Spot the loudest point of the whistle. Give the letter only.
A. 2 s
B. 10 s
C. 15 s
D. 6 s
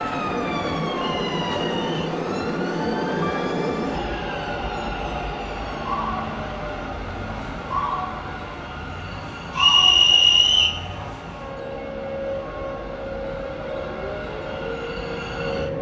B.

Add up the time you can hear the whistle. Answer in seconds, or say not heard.
2 s.